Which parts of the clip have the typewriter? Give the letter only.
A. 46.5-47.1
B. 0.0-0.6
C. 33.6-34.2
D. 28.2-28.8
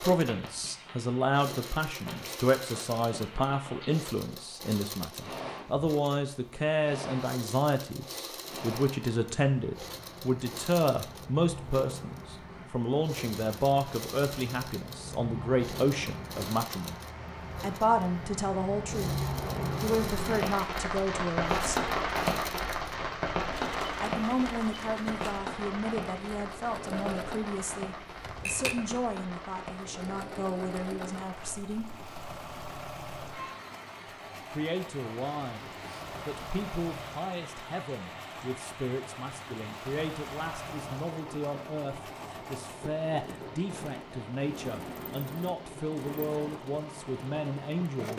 D.